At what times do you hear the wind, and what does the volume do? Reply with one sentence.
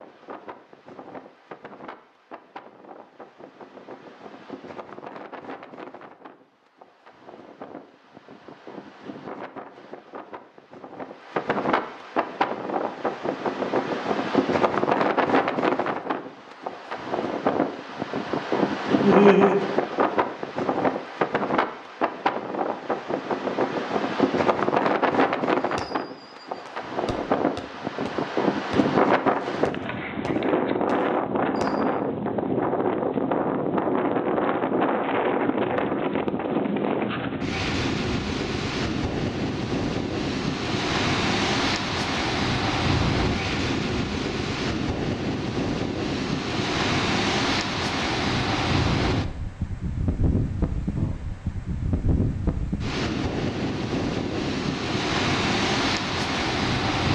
You can hear the wind from 0.0 to 57.1 s, getting louder.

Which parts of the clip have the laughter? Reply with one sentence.
The laughter can be heard from 19.0 to 19.7 s.